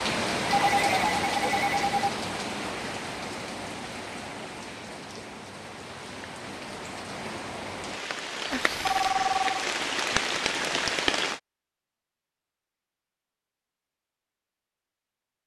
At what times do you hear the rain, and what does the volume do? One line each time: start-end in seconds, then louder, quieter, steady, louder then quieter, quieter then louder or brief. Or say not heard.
0.0-11.4 quieter then louder.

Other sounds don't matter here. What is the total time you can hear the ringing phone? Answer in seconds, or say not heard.
3 s.